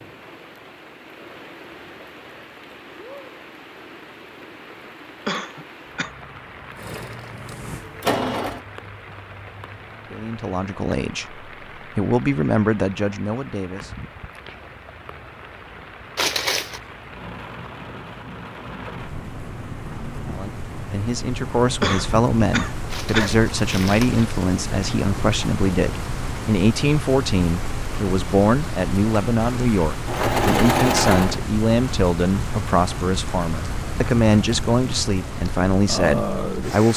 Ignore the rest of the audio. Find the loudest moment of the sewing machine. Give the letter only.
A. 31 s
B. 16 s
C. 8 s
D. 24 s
A.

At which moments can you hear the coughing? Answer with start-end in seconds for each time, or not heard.
5.2-6.1, 21.8-23.4.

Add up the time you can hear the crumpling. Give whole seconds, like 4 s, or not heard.
2 s.